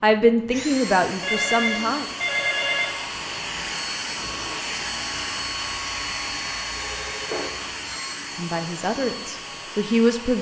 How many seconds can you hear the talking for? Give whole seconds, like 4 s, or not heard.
4 s.